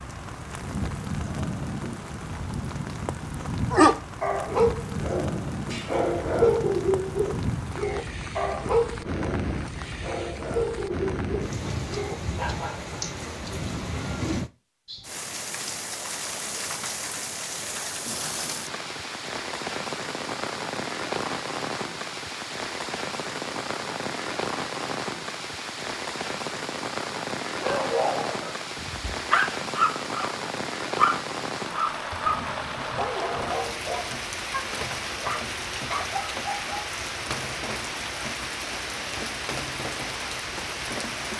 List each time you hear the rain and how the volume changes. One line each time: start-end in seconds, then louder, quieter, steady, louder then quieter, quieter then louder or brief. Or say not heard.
0.0-41.3 steady.